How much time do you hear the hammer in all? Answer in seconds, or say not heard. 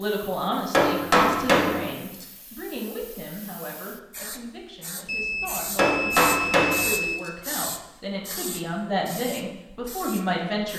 3 s.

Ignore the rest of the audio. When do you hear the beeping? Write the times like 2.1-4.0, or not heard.
5.0-7.2.